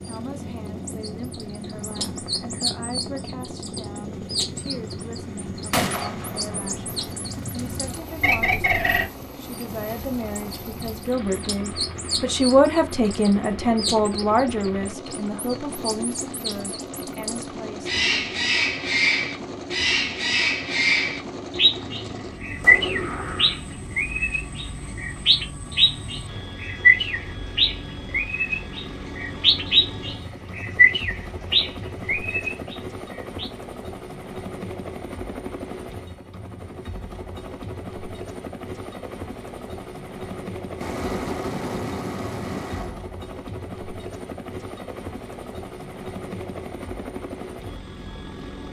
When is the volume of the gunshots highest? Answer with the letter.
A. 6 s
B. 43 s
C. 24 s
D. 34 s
A.